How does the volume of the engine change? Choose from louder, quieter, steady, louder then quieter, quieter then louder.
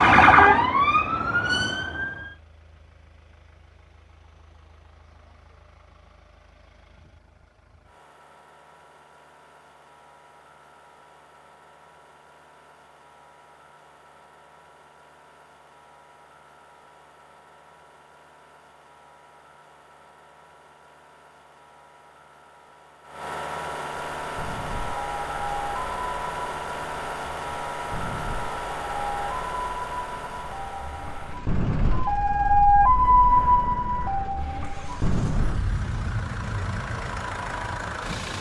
louder then quieter.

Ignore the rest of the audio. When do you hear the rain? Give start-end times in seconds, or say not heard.
not heard.